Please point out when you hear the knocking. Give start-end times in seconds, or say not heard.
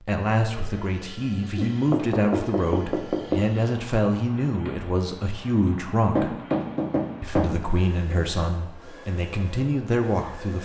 1.6-3.4, 6.2-7.5.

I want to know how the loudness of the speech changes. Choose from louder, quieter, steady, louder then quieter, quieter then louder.
steady.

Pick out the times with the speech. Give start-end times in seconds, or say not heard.
0.1-6.3, 7.2-10.6.